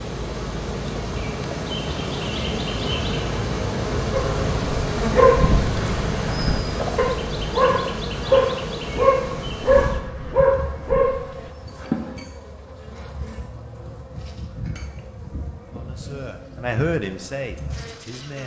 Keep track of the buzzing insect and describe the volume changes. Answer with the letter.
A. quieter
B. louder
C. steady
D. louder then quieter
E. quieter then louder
A.